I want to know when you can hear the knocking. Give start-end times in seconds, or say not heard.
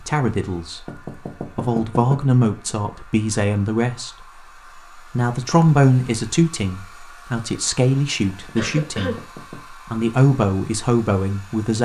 0.8-2.2, 8.2-9.7.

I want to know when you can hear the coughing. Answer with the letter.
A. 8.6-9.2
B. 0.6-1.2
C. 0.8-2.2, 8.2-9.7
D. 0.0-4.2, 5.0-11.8
A.